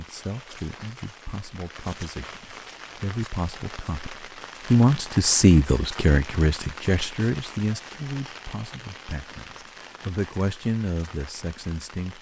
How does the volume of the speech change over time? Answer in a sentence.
The loudness of the speech goes up, then down.